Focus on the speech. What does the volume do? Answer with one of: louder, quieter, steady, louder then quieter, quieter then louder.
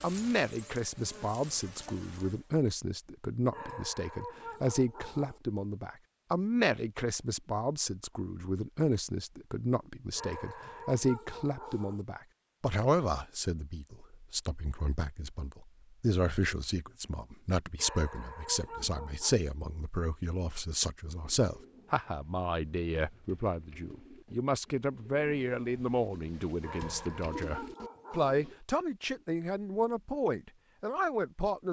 steady.